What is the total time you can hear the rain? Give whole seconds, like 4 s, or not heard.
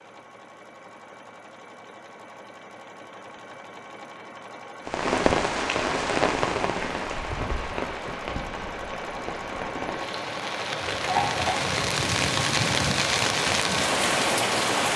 10 s.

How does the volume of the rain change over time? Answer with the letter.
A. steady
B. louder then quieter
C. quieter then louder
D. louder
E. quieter
C.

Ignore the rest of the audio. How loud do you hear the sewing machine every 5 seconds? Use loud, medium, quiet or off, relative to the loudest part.
quiet, medium, loud.